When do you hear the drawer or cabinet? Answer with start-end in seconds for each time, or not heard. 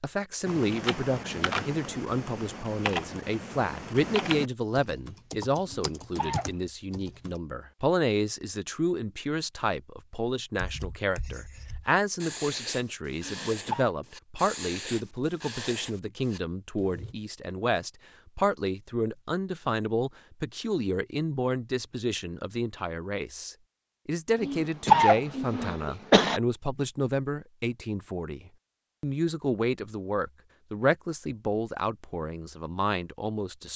not heard.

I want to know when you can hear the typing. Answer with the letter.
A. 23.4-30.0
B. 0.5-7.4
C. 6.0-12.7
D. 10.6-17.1
B.